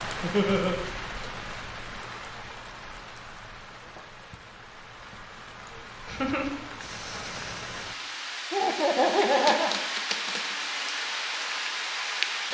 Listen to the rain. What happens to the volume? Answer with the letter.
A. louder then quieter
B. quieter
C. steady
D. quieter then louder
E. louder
D.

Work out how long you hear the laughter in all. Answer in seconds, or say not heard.
3 s.